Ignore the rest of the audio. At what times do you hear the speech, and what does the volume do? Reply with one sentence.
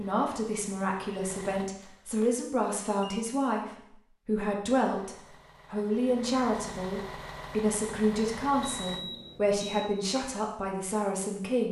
The speech can be heard from 0.0 to 11.6 s, at a steady volume.